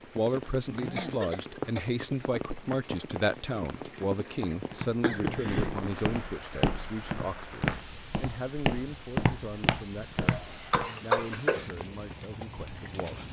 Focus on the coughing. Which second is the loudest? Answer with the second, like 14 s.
11 s.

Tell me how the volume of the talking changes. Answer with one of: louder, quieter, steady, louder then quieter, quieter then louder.
quieter.